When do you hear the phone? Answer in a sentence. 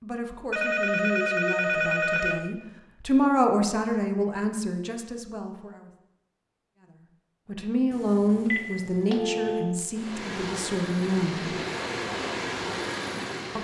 The phone can be heard from 0.5 to 2.4 s and from 7.9 to 9.8 s.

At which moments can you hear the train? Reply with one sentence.
The train can be heard from 9.9 to 13.5 s.